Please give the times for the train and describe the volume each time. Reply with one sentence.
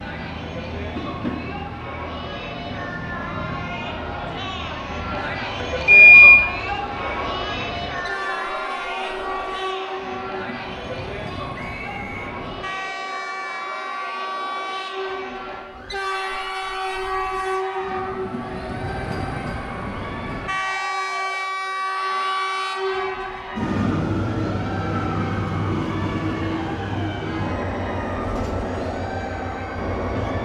The train can be heard from 0.0 to 30.4 s, getting louder.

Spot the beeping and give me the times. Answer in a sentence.
The beeping can be heard from 5.7 to 6.4 s.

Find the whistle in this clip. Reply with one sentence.
You can hear the whistle from 11.6 to 12.3 s.